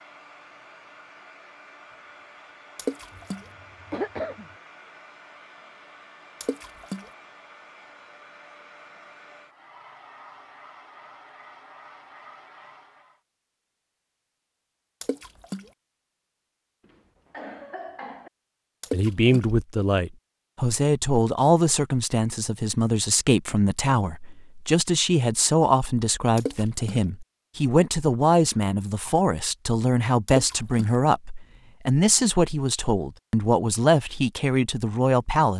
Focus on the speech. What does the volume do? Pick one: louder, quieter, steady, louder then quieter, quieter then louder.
steady.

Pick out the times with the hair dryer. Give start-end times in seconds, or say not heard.
0.0-13.2.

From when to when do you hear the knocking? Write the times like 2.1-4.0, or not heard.
not heard.